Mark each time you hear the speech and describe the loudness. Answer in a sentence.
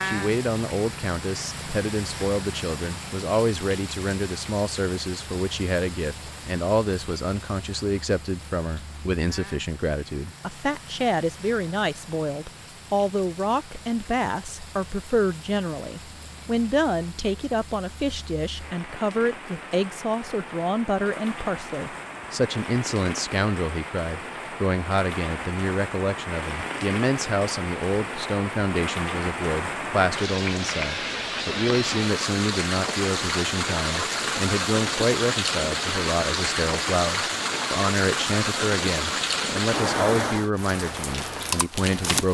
The speech can be heard from 0.0 to 42.2 s, at a steady volume.